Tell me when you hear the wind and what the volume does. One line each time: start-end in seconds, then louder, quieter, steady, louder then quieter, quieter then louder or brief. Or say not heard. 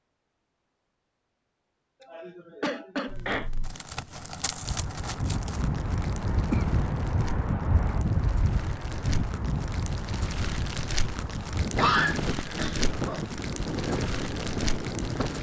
4.6-15.3 steady.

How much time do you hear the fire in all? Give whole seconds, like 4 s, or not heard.
12 s.